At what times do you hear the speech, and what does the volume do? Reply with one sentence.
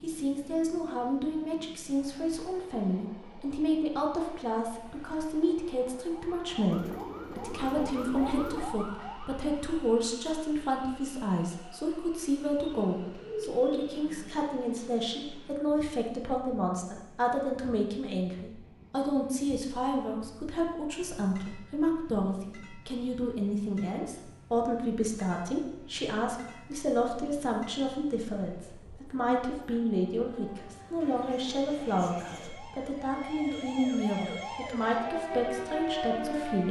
You can hear the speech from 0.0 to 36.6 s, at a steady volume.